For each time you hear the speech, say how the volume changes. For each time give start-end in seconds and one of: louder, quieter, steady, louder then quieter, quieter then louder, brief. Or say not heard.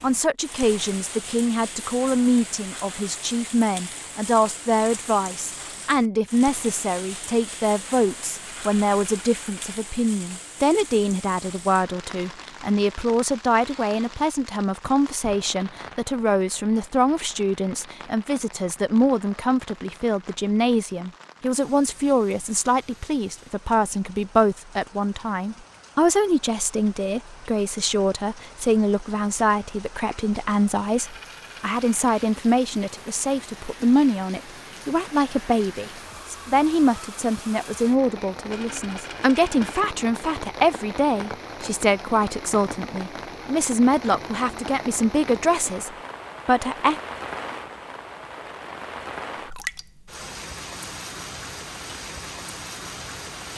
0.0-47.0 steady.